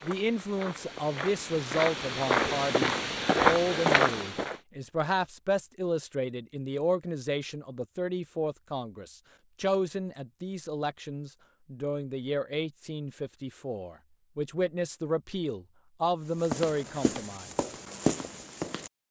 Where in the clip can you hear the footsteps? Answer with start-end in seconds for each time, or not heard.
0.0-4.5, 16.4-18.9.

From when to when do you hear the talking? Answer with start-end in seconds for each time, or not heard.
0.0-17.5.